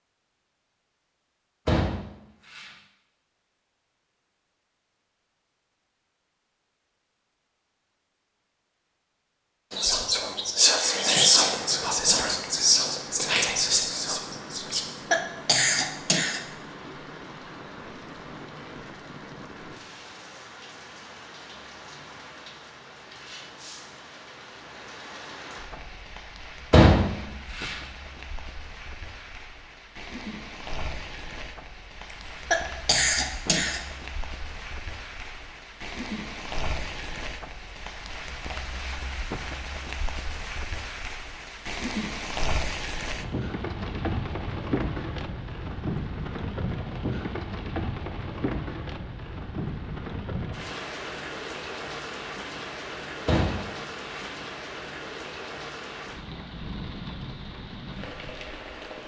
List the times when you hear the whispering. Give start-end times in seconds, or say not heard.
9.8-14.8.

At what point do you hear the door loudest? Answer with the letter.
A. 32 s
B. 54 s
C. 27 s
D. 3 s
C.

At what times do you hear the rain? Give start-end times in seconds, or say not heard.
11.3-59.0.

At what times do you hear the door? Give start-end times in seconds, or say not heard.
1.6-2.7, 26.7-27.8, 53.2-54.3.